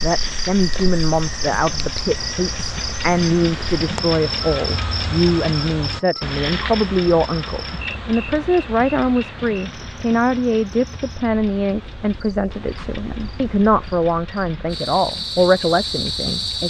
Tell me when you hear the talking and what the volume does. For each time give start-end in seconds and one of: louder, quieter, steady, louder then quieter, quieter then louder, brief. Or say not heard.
0.0-16.6 steady.